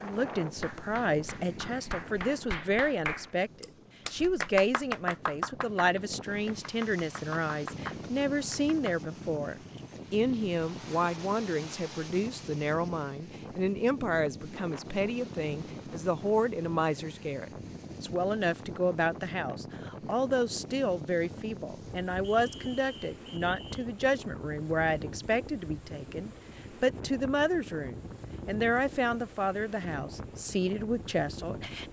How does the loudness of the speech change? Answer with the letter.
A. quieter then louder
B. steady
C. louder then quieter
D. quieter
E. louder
B.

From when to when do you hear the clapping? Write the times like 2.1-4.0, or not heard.
0.6-9.1.